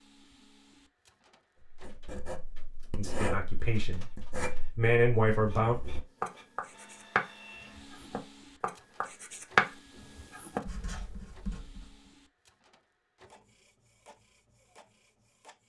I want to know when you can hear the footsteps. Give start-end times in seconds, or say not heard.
not heard.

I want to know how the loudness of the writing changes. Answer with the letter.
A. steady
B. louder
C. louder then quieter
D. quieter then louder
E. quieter
C.